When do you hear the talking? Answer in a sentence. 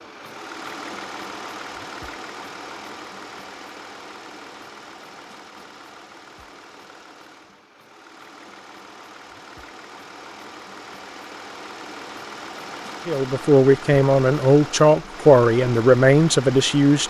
The talking can be heard from 13.1 to 17.0 s.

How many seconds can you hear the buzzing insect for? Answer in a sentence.
The buzzing insect can't be heard in this clip.